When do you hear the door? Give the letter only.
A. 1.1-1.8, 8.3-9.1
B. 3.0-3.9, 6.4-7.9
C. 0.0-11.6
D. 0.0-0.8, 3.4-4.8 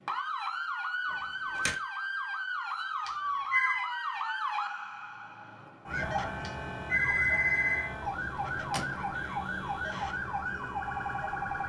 A.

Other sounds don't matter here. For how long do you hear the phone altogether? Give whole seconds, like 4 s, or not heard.
2 s.